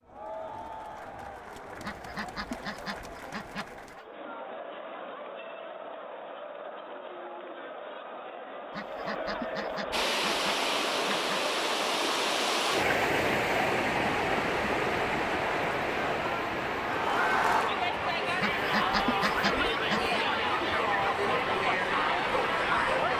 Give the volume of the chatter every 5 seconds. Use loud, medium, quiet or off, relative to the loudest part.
quiet, medium, medium, loud, loud.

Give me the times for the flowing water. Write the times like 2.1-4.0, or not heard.
9.9-23.1.